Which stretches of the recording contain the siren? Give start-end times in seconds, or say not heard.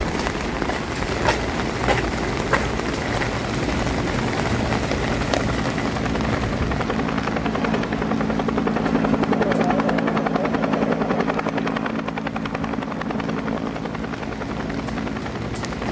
not heard.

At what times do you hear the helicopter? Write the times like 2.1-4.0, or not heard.
0.0-15.8.